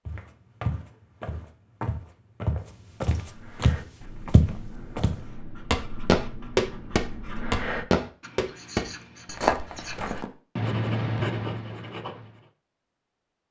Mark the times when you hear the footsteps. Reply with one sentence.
You can hear the footsteps from 0.1 to 10.3 s.